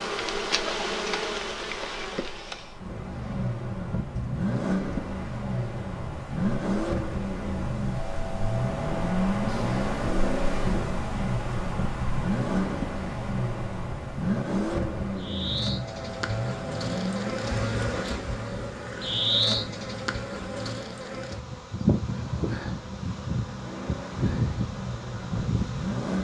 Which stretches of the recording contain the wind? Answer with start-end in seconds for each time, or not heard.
0.0-15.3.